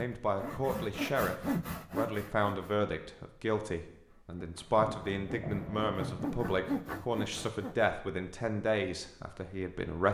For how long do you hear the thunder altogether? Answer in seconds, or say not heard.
2 s.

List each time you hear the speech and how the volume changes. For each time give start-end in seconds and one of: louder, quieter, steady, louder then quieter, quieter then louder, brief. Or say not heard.
0.0-10.1 steady.